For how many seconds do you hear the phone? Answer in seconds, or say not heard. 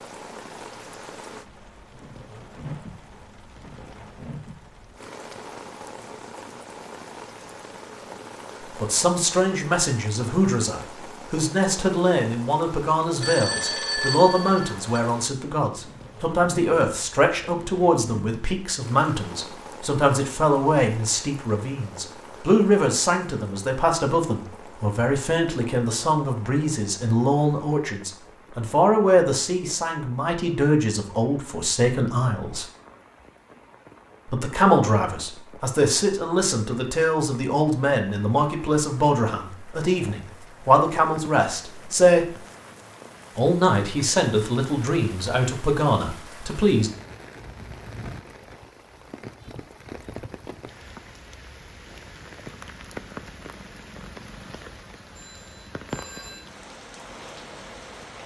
3 s.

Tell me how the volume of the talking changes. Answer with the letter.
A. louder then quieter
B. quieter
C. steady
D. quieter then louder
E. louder
C.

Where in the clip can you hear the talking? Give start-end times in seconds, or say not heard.
8.8-32.6, 34.3-42.4, 43.4-46.9.